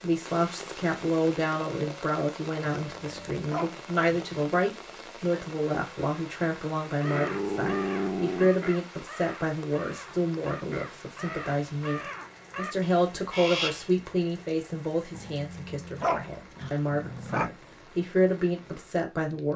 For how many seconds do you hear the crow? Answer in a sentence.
You can hear the crow for 7 seconds altogether.